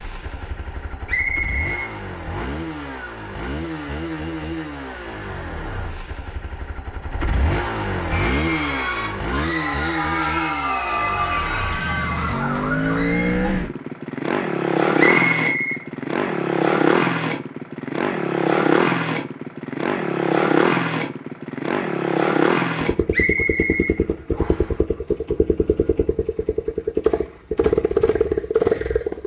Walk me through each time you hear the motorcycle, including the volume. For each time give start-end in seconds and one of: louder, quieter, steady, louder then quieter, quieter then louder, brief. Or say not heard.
0.0-29.2 louder.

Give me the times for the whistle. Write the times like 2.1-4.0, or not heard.
1.1-2.6, 14.9-16.4, 23.1-24.7.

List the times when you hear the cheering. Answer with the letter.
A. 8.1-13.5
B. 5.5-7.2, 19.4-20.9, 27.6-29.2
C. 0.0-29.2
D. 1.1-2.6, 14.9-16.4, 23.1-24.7
A.